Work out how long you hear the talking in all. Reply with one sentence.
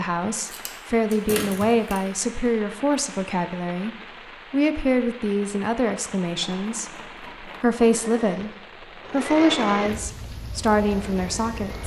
The talking can be heard for 12 seconds in total.